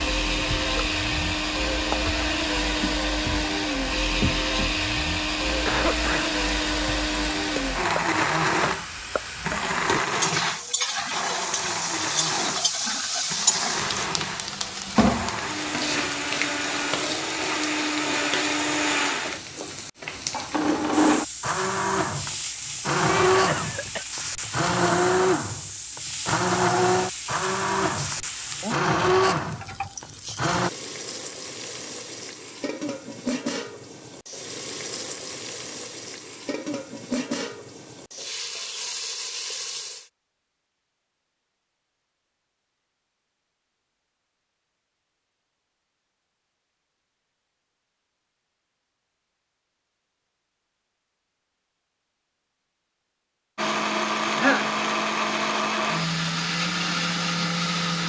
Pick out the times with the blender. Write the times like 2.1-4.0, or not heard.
0.0-30.7, 53.5-58.0.